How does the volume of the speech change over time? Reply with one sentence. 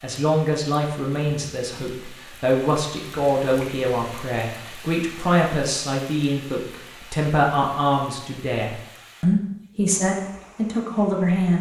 The loudness of the speech stays about the same.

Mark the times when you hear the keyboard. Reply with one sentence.
You can't hear the keyboard here.